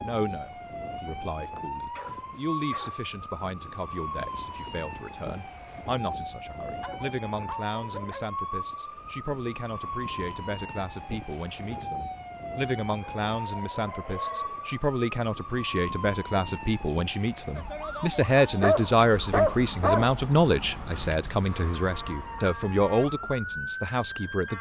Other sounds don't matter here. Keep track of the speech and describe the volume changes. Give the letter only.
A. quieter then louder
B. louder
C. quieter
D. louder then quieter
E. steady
B.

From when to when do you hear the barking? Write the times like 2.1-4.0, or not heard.
1.9-3.0, 6.8-8.3, 13.0-14.8, 18.6-20.2.